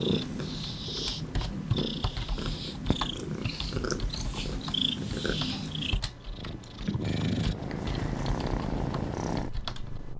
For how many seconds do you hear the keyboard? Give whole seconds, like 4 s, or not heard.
10 s.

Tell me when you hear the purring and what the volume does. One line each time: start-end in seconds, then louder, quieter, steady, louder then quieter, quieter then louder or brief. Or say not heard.
0.0-10.1 steady.